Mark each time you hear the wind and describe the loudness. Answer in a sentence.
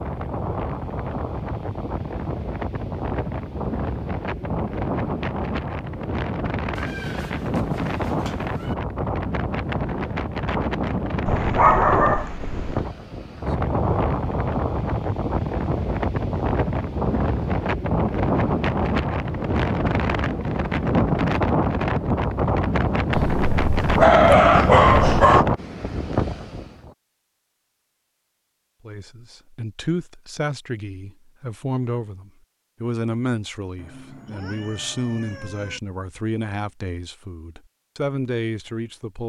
The wind can be heard from 0.0 to 26.9 s, getting louder.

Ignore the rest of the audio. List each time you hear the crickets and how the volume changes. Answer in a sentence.
You can't hear the crickets here.